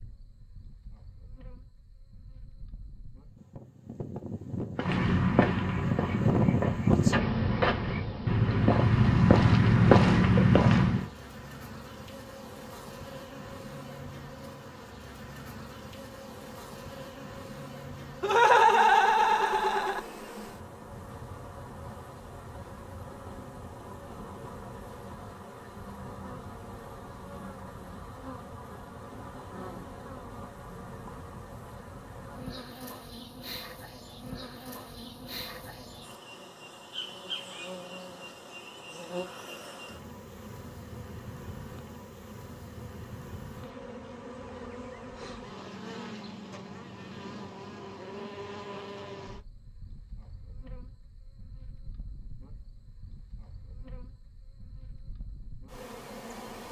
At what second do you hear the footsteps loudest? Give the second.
10 s.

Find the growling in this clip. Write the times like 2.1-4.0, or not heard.
not heard.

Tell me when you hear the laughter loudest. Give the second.
19 s.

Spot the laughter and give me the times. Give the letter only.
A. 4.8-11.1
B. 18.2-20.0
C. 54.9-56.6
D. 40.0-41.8
B.